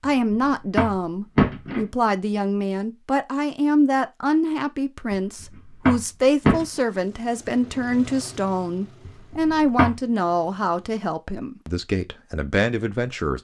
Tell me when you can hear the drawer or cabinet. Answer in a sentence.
You can hear the drawer or cabinet from 0.0 to 1.9 s, from 5.1 to 6.7 s and from 9.1 to 9.9 s.